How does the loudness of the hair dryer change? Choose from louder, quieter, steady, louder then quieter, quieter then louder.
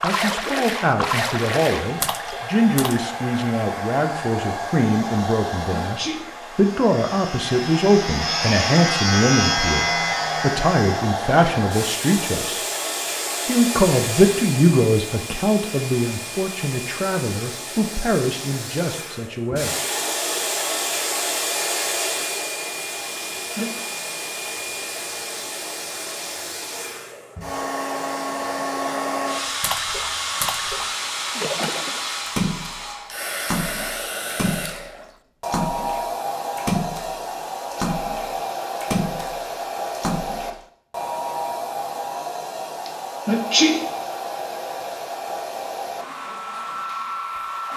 steady.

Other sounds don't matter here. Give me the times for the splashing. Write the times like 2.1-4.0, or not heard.
0.0-3.1, 29.6-40.6.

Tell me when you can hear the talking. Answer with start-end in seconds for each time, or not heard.
0.0-12.6, 13.4-19.8.